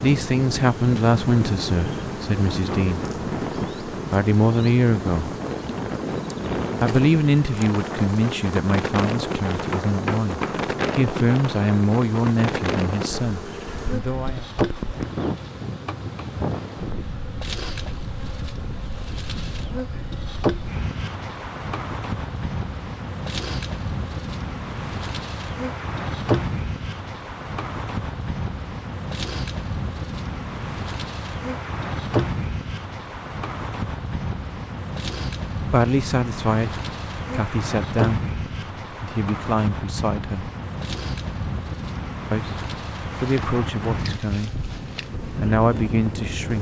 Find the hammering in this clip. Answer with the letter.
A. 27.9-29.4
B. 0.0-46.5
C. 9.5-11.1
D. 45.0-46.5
C.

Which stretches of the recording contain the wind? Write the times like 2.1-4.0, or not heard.
0.0-46.5.